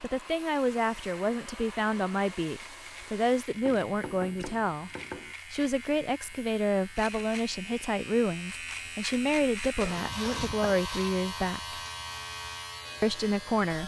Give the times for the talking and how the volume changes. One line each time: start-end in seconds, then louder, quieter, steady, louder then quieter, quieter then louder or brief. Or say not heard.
0.0-4.9 steady
5.5-11.8 steady
13.0-13.8 brief.